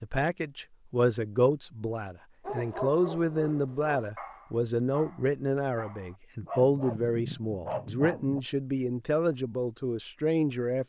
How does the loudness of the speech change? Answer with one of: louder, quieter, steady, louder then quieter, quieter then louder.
steady.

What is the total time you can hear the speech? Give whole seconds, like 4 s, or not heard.
11 s.